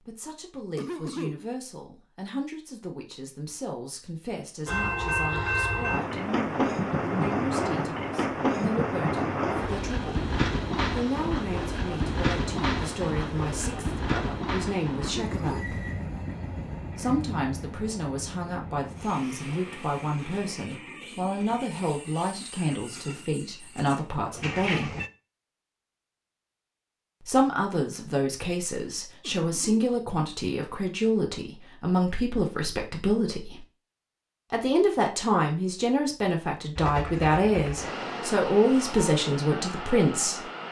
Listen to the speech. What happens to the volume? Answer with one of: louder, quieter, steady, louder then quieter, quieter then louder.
louder.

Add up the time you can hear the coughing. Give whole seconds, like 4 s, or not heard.
2 s.